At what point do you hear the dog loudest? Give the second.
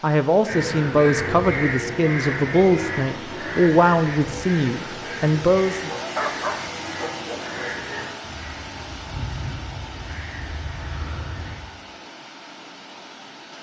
6 s.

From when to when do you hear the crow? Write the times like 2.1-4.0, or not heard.
0.5-11.6.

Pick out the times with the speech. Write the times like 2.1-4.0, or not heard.
0.0-5.9.